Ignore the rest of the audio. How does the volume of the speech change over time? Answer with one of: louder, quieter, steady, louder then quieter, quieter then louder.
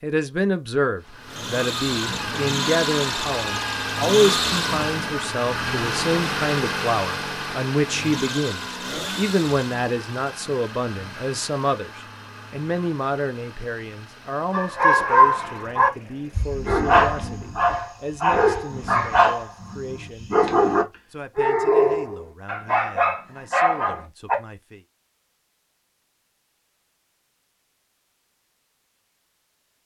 quieter.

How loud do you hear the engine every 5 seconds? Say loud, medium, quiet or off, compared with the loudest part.
loud, loud, quiet, quiet, off, off.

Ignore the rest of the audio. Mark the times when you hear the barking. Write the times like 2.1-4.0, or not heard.
14.5-24.4.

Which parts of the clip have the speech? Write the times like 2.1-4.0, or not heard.
0.0-24.9.